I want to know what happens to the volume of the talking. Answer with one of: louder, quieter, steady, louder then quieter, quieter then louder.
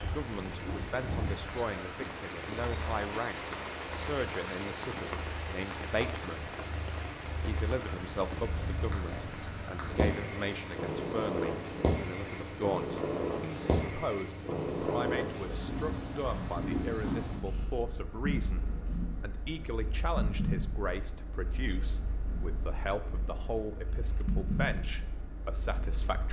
steady.